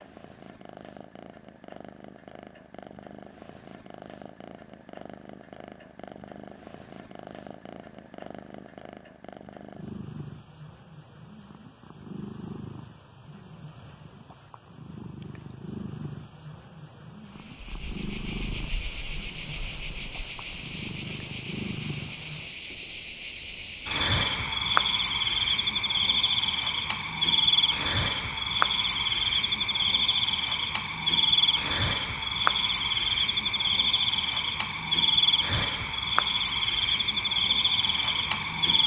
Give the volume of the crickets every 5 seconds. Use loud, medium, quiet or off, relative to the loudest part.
off, off, off, loud, loud, loud, loud, loud.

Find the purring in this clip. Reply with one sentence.
You can hear the purring from 0.0 to 22.6 s.